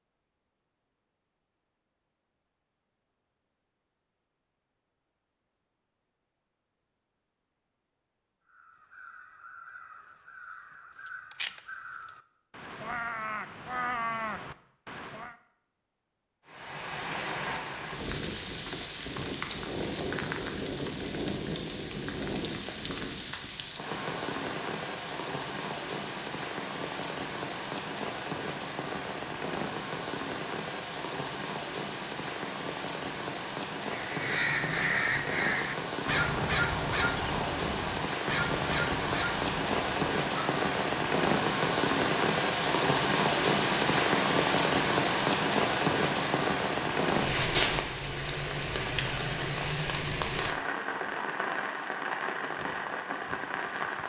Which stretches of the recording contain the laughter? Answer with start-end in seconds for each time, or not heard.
not heard.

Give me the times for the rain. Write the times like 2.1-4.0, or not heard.
16.4-54.0.